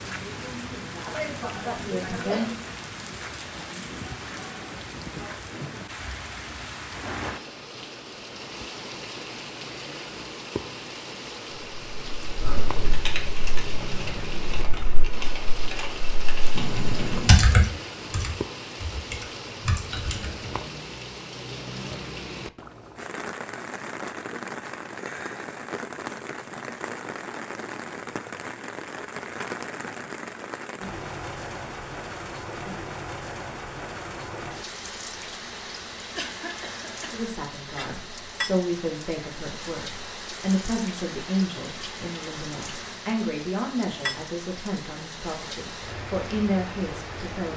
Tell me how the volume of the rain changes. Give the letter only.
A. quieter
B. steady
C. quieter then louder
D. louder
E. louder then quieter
B.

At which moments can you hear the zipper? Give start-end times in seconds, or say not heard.
not heard.